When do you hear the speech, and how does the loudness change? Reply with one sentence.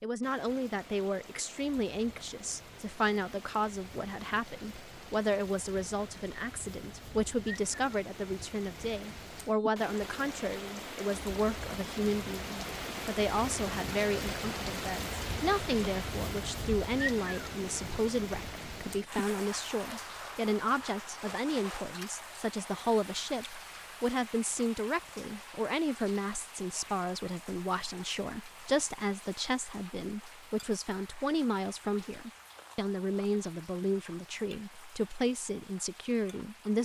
The speech can be heard from 0.0 to 36.8 s, at a steady volume.